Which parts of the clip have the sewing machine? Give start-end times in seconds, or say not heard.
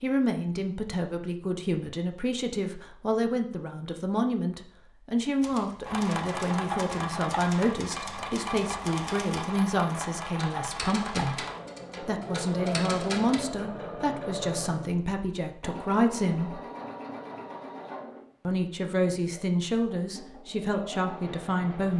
5.8-21.9.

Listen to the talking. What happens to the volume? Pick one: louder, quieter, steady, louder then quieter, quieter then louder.
steady.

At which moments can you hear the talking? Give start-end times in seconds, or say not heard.
0.0-16.6, 18.4-21.9.